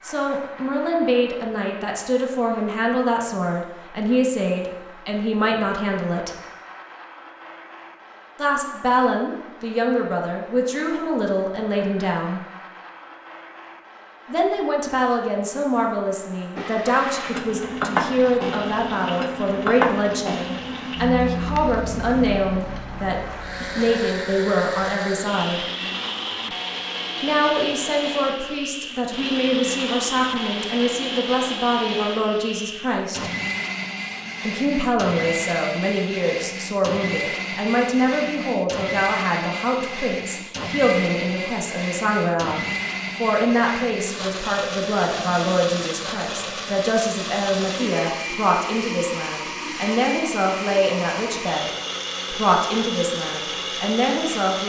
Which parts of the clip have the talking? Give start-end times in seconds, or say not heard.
0.0-6.3, 8.3-12.4, 14.2-25.6, 27.2-33.3, 34.4-51.6, 52.3-54.6.